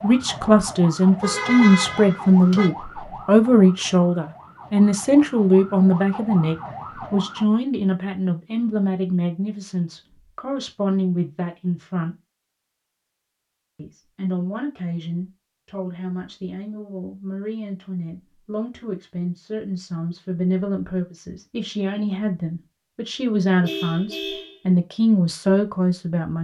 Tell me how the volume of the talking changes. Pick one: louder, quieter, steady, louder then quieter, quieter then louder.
quieter then louder.